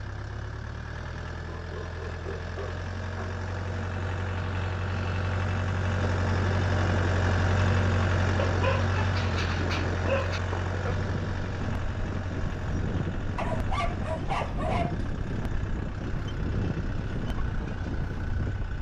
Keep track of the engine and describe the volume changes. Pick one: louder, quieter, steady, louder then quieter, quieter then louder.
louder then quieter.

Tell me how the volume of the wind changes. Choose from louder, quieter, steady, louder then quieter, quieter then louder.
steady.